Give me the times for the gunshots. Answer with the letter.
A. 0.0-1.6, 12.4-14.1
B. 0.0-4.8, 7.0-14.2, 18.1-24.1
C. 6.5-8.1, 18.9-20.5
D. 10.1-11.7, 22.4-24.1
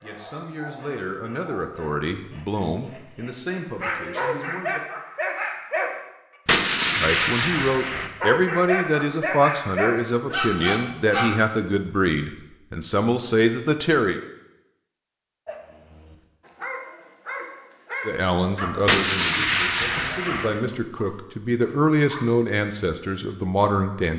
C.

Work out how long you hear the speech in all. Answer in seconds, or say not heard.
18 s.